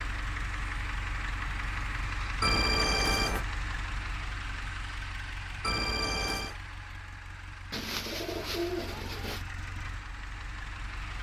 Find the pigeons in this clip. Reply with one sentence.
You can hear the pigeons from 7.7 to 9.4 s.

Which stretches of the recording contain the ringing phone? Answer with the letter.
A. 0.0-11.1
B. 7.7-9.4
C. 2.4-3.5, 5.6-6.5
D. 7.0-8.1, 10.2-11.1
C.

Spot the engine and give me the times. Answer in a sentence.
You can hear the engine from 0.0 to 11.1 s.